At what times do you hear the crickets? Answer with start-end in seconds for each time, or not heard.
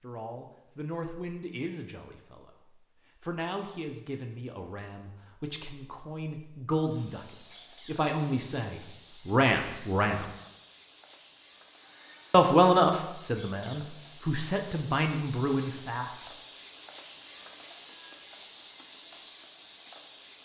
6.8-20.4.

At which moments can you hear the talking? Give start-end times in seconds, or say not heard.
0.0-2.5, 3.2-10.3, 12.3-16.3.